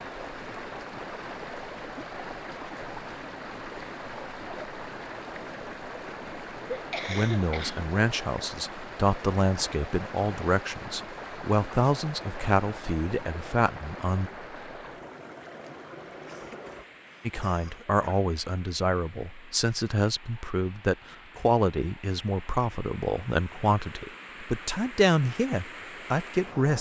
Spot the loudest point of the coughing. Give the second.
7 s.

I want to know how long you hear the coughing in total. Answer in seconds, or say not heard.
3 s.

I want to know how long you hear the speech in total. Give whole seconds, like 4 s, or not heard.
17 s.